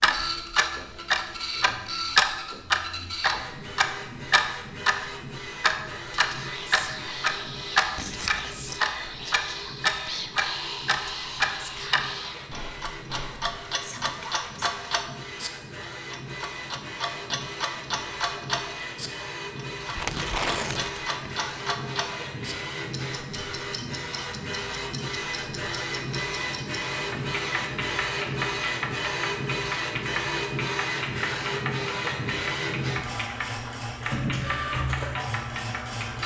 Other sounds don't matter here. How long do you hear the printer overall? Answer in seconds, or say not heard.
36 s.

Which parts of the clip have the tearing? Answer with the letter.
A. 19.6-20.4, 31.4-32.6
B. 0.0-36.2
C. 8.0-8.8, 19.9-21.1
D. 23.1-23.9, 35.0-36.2
C.